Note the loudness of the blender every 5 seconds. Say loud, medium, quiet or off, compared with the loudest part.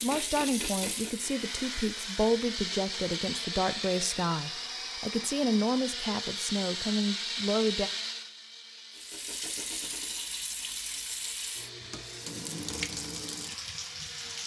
loud, loud, medium.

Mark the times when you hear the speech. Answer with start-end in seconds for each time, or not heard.
0.0-7.9.